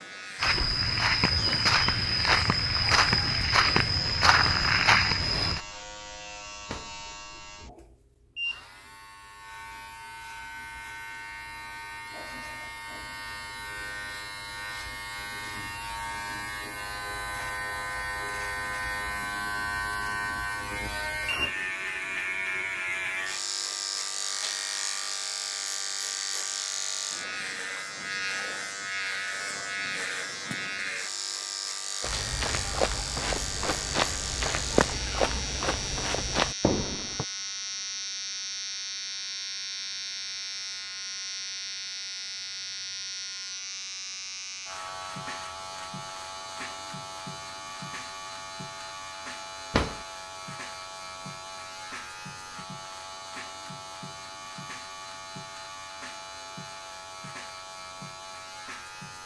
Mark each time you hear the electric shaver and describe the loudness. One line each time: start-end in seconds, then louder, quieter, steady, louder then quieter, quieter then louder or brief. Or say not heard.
0.0-59.2 louder then quieter.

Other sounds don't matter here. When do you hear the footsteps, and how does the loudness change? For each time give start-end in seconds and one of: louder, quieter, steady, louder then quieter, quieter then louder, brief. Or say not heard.
0.4-5.6 steady
32.0-37.2 steady.